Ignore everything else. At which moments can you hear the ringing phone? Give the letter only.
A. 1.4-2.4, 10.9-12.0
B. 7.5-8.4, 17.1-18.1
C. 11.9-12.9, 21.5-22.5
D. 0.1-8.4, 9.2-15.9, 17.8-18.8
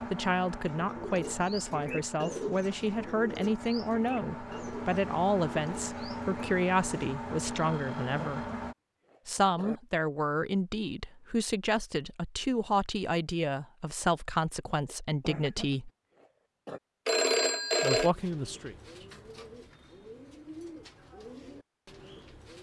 B.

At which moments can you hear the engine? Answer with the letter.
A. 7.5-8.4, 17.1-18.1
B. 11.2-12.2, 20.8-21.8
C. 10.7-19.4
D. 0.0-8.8
D.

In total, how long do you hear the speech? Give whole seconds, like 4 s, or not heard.
16 s.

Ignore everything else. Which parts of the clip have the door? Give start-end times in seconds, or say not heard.
not heard.